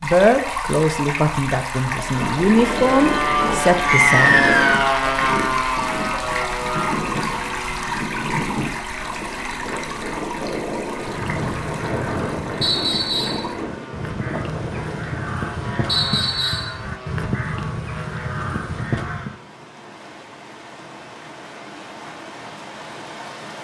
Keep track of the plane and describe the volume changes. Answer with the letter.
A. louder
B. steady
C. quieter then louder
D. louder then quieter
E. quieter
E.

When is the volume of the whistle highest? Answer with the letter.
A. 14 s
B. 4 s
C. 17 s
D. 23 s
B.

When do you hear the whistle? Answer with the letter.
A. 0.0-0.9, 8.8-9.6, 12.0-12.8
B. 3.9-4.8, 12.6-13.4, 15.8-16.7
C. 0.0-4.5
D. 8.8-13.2
B.